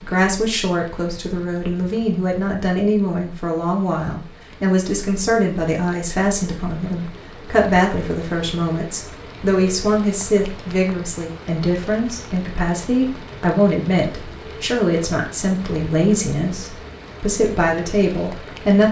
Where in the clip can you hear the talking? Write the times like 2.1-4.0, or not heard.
0.0-18.8.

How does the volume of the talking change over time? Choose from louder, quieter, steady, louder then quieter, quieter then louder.
steady.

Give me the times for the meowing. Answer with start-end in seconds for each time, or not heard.
not heard.